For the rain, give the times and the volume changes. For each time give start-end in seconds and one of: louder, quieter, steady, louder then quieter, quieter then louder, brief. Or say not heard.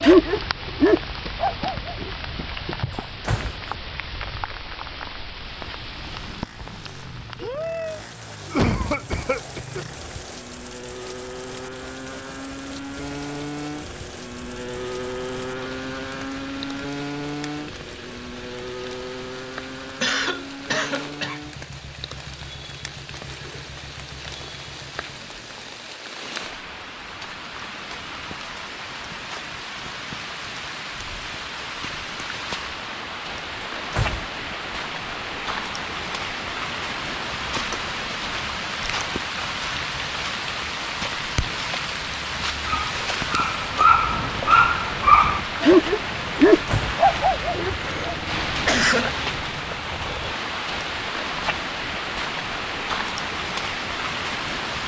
0.0-54.8 quieter then louder.